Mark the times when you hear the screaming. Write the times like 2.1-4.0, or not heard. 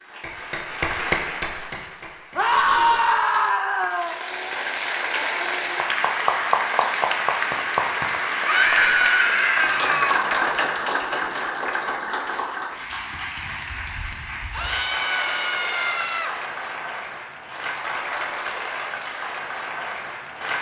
2.4-4.2, 8.4-10.1, 14.5-16.4.